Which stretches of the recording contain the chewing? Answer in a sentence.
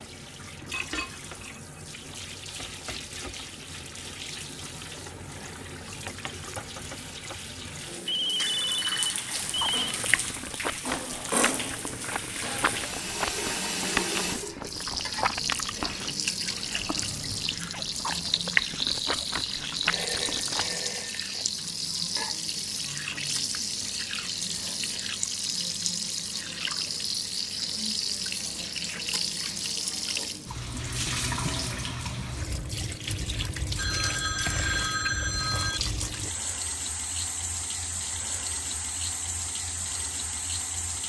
The chewing can be heard from 9.3 to 20.8 s.